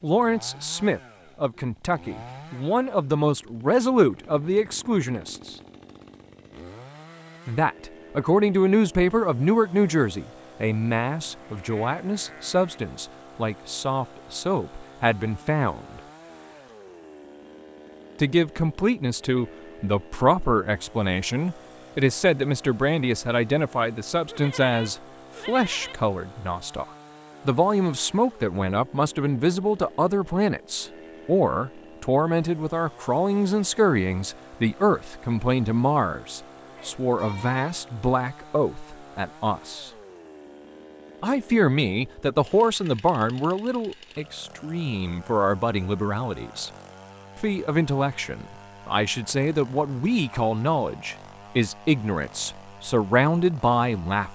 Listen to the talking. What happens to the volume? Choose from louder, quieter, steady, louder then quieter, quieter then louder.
steady.